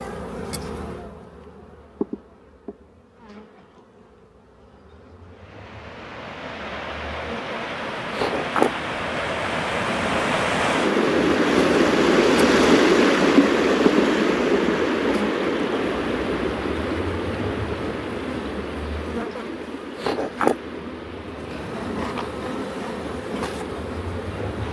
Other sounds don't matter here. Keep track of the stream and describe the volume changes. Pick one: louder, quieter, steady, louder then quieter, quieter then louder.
louder then quieter.